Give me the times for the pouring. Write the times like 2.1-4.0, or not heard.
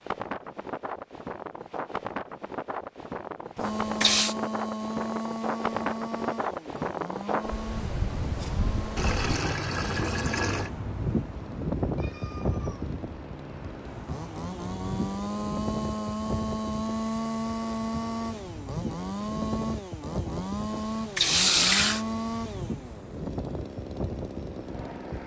3.5-4.3, 8.9-10.7, 20.7-22.1.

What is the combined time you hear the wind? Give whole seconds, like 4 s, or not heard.
25 s.